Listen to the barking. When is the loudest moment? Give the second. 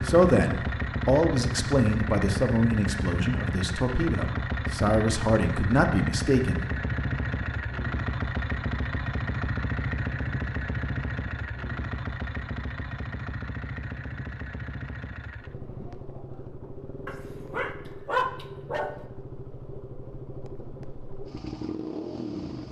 18 s.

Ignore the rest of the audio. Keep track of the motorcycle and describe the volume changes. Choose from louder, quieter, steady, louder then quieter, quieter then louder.
quieter.